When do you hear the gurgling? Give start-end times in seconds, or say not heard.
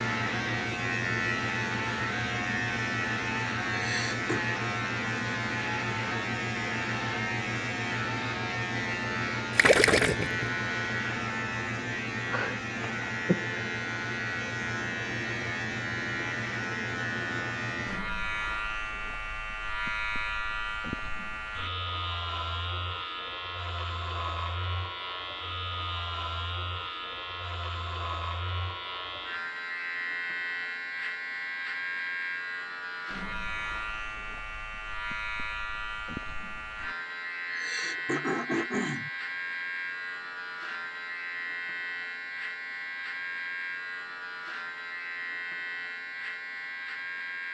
9.6-10.7.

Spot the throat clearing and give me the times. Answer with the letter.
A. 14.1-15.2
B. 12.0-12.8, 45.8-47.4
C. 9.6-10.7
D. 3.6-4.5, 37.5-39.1
D.